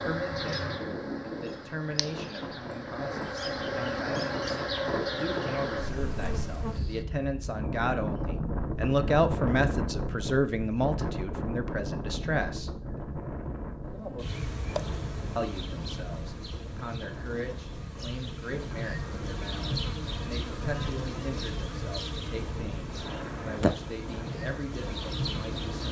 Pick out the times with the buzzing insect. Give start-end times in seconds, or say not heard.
0.0-7.0, 13.8-25.8.